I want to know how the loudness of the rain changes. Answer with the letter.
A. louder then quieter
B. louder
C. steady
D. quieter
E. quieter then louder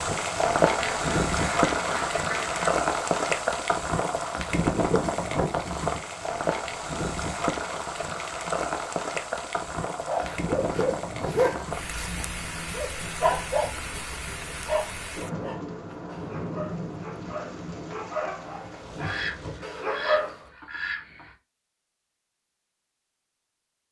D.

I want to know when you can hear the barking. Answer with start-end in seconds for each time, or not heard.
10.1-13.8, 14.7-20.4.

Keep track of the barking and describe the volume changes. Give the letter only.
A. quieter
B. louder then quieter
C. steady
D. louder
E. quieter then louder
E.